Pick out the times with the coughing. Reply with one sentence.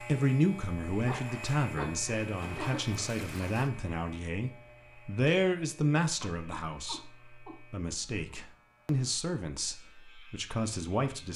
The coughing can be heard from 1.0 to 3.0 s and from 6.2 to 7.6 s.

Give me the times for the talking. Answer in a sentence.
The talking can be heard from 0.0 to 11.3 s.